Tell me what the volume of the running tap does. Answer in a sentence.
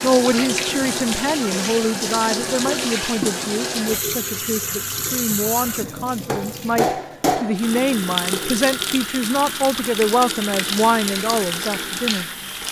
The volume of the running tap stays about the same.